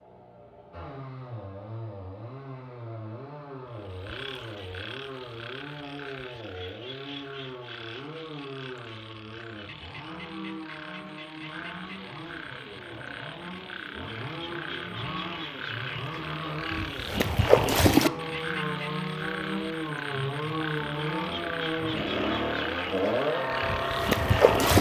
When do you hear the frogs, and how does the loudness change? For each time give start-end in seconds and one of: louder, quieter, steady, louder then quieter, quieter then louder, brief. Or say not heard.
4.0-24.7 louder then quieter.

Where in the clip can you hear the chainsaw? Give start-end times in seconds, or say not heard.
0.0-24.7.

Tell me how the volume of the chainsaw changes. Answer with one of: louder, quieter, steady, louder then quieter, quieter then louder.
louder.